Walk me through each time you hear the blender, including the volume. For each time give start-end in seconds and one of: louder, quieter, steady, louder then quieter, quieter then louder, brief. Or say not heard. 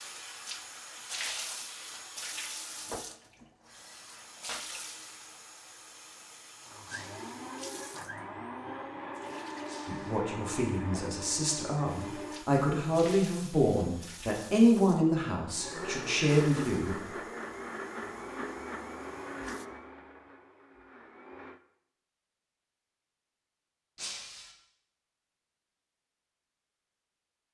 6.7-12.4 steady
15.6-21.6 quieter.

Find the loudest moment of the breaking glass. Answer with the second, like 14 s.
24 s.